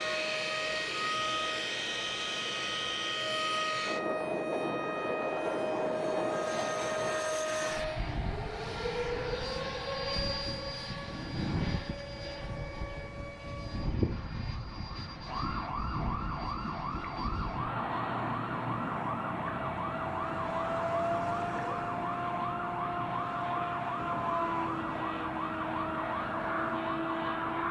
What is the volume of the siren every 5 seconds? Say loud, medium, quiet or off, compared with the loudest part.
loud, loud, medium, loud, loud, loud.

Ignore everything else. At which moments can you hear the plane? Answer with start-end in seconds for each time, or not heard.
0.0-27.6.